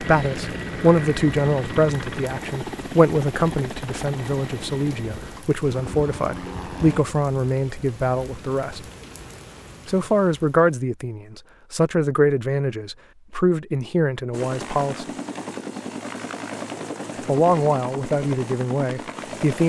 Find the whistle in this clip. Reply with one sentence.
The whistle can't be heard in this clip.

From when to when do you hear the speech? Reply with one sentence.
The speech can be heard from 0.0 to 8.8 s, from 9.8 to 15.1 s and from 17.2 to 19.6 s.